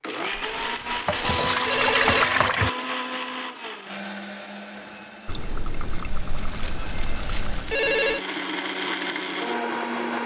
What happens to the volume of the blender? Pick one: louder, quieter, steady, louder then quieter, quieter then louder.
quieter then louder.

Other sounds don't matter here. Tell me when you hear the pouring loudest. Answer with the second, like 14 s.
2 s.